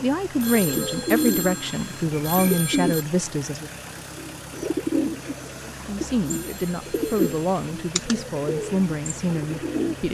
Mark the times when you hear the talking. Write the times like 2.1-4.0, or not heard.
0.0-3.7, 5.8-10.1.